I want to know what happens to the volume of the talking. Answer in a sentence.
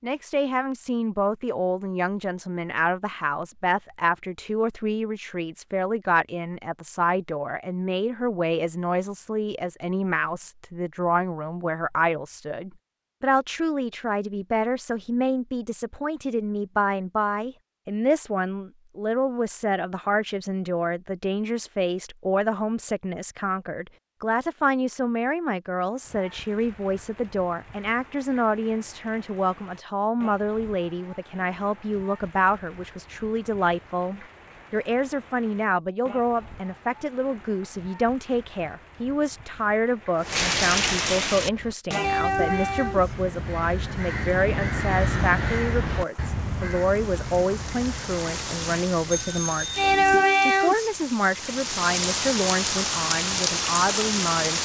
The volume of the talking stays about the same.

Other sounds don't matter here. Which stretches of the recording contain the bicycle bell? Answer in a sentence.
You can hear the bicycle bell from 49.1 to 49.9 s.